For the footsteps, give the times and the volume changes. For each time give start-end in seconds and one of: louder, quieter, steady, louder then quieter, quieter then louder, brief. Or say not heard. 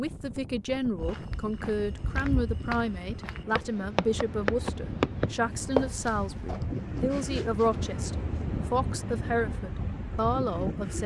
1.0-8.5 louder then quieter.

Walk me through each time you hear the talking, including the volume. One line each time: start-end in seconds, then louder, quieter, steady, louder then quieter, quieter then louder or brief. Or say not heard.
0.0-11.0 steady.